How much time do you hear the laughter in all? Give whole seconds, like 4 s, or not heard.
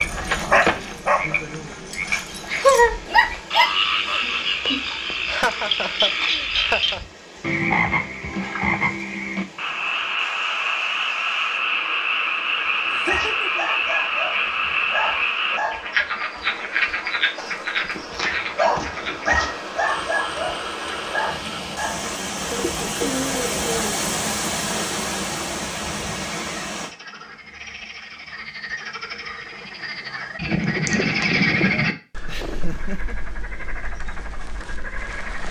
4 s.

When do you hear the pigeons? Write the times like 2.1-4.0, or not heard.
22.4-24.0.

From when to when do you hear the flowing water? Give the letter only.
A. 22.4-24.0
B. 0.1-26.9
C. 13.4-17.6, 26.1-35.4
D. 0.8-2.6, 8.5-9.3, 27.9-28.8
B.